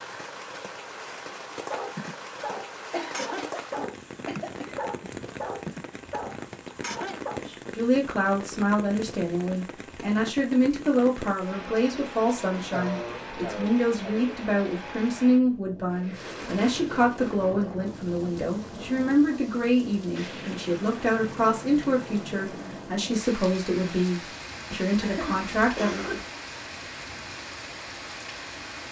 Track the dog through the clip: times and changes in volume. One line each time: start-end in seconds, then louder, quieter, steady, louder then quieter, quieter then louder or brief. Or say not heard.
1.7-7.4 steady.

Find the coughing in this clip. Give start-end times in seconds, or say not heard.
2.9-4.8, 12.7-14.3, 25.0-26.2.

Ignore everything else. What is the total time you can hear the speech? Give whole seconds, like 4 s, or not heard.
19 s.